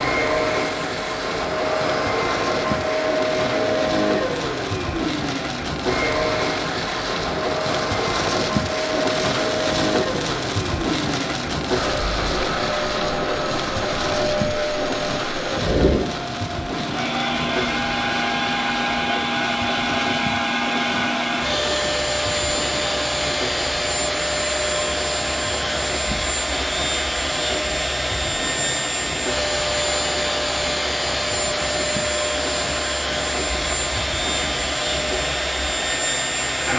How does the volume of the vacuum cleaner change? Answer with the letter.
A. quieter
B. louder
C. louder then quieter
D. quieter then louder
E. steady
E.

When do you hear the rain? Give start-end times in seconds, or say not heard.
0.0-36.7.